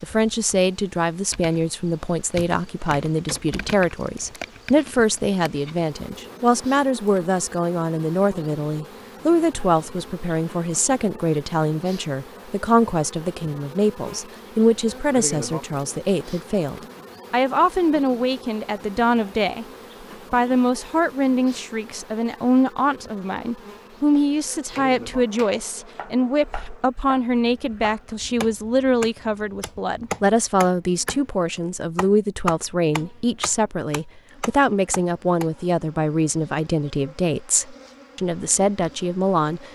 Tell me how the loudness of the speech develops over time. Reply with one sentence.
The loudness of the speech stays about the same.